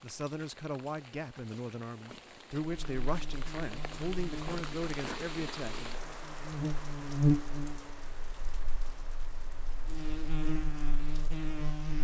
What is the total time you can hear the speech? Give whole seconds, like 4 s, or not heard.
6 s.